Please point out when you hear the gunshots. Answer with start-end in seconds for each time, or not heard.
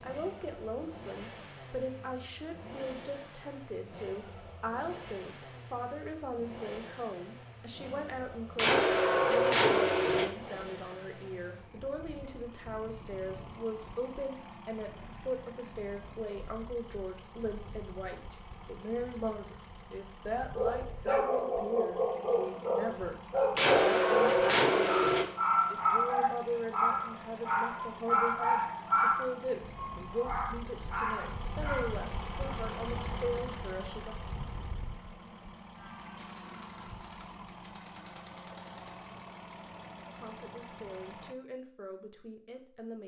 8.6-10.2, 23.6-25.2, 35.8-39.1.